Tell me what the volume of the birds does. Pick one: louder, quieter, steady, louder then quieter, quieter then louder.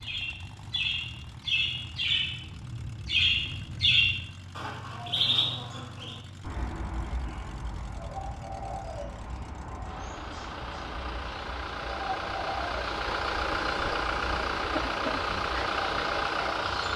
quieter.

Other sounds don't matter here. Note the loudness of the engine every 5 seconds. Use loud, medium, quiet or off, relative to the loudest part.
quiet, quiet, loud, loud.